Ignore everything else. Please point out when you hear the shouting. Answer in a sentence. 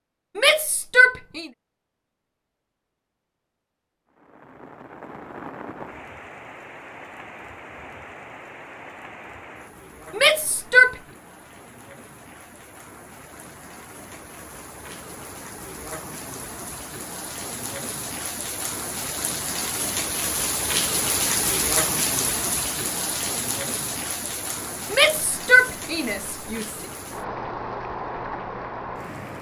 The shouting can be heard from 0.3 to 1.5 s, from 10.2 to 10.9 s and from 24.9 to 26.8 s.